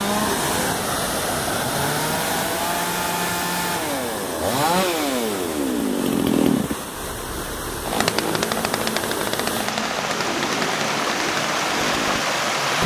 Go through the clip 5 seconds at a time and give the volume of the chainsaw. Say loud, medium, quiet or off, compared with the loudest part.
loud, loud, medium.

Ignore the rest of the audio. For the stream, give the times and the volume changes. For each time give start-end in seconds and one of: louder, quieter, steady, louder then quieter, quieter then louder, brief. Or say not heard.
0.0-12.8 quieter then louder.